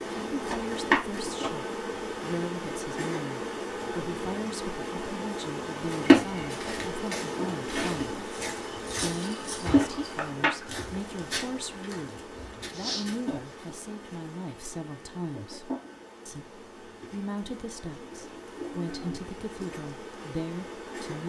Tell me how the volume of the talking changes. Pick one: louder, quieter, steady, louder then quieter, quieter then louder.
steady.